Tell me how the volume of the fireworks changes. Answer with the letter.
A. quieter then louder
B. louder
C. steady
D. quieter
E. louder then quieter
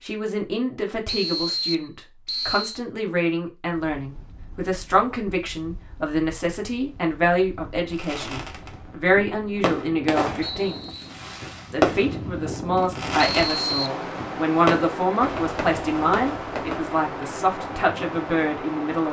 E.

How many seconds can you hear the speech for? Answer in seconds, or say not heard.
18 s.